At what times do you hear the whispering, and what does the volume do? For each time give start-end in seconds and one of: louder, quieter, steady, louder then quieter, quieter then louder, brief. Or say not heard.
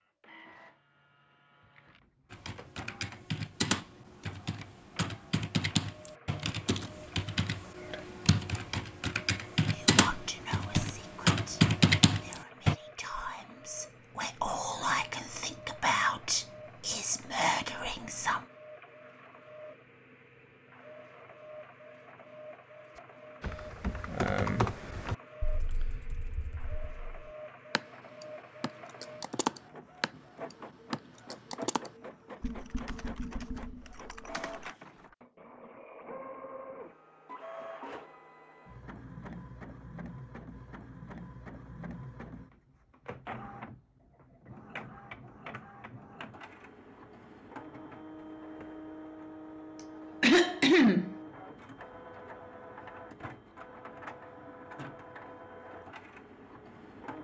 9.7-18.4 louder.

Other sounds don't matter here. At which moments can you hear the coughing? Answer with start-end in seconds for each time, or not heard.
49.8-51.1.